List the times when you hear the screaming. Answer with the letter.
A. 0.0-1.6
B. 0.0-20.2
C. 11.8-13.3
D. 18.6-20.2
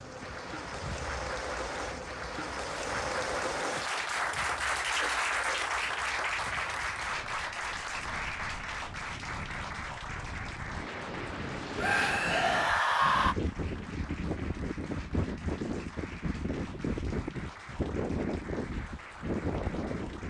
C.